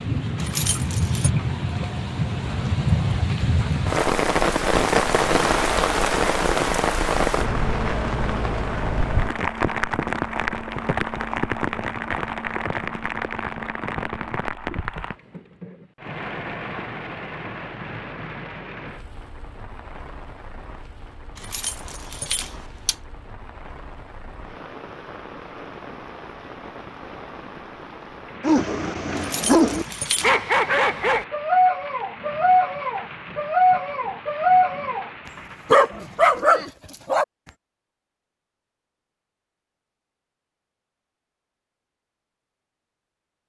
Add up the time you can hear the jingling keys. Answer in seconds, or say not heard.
4 s.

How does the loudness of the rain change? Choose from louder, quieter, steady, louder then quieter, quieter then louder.
quieter.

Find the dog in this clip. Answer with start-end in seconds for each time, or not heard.
28.4-37.2.